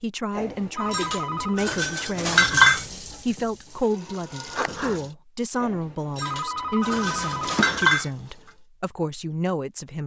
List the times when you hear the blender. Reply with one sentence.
You can't hear the blender here.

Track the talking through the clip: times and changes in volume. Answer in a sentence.
The talking can be heard from 0.0 to 10.0 s, at a steady volume.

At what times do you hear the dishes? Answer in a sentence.
The dishes can be heard from 0.3 to 2.9 s and from 5.6 to 8.1 s.